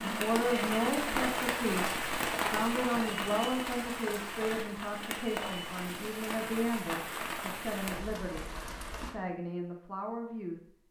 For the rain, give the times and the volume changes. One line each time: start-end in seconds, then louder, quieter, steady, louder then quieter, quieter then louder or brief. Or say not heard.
0.0-9.2 quieter.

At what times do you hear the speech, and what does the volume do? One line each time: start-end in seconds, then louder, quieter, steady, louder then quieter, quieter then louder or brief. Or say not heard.
0.0-10.8 quieter.